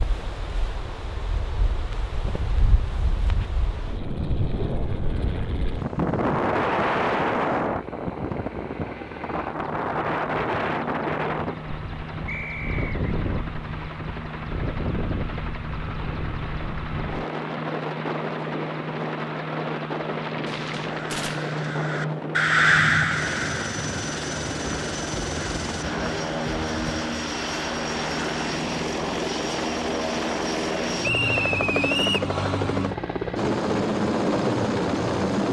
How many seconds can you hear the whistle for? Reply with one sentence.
The whistle can be heard for 2 seconds in total.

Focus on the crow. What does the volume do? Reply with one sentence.
The volume of the crow goes up, then down.